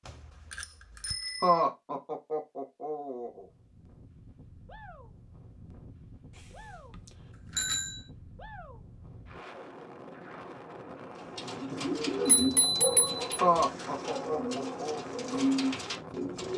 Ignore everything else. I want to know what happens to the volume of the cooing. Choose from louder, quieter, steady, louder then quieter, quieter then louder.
quieter then louder.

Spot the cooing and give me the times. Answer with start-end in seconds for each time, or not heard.
11.2-16.5.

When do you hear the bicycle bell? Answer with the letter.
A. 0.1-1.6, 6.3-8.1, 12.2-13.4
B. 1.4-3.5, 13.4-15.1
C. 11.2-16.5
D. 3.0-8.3
A.